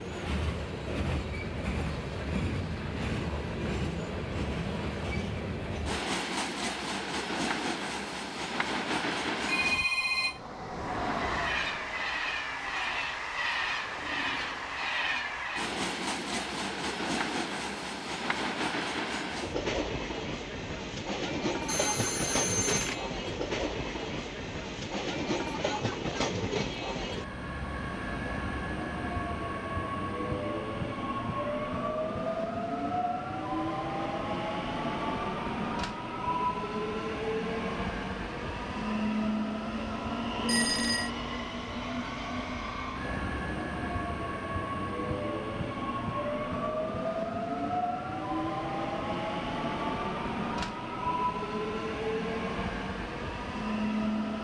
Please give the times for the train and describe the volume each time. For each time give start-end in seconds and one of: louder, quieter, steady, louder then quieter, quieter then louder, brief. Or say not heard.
0.0-54.3 steady.